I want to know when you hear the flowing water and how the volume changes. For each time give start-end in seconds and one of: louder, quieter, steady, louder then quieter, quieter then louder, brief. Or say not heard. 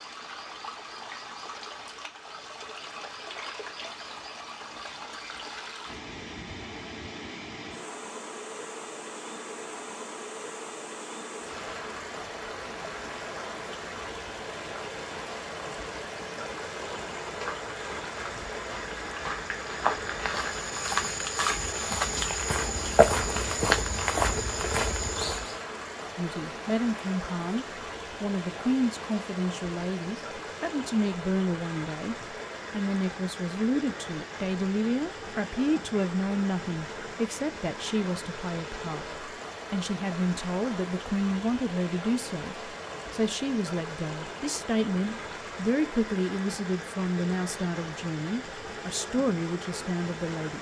0.0-50.5 steady.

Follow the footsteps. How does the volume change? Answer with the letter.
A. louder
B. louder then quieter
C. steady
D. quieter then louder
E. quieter
A.